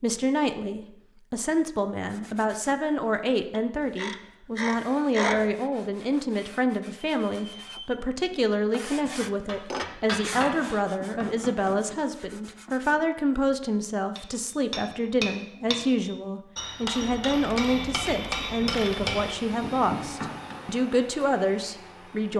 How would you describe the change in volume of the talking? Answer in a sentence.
The loudness of the talking stays about the same.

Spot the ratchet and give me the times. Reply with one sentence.
The ratchet can be heard from 3.5 to 5.5 s and from 17.0 to 19.4 s.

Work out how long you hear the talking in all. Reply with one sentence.
The talking can be heard for 22 seconds in total.